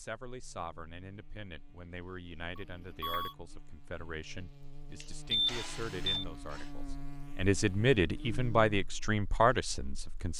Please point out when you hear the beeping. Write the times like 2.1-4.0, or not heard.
2.5-3.4, 5.3-6.2.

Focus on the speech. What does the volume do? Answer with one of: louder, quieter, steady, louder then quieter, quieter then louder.
louder.